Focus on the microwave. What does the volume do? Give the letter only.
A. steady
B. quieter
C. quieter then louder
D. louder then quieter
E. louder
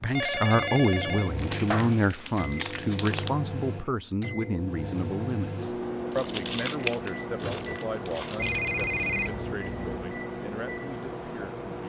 A.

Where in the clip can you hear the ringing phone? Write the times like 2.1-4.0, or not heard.
0.1-2.0, 8.3-10.1.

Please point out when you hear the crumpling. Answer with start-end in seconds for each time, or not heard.
1.4-3.3, 6.1-8.7.